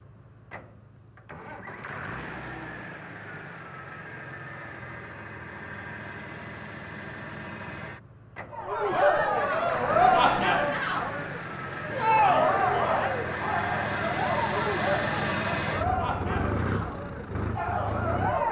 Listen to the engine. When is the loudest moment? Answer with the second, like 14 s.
15 s.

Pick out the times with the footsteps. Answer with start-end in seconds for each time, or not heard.
not heard.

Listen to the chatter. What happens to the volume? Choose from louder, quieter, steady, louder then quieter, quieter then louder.
quieter.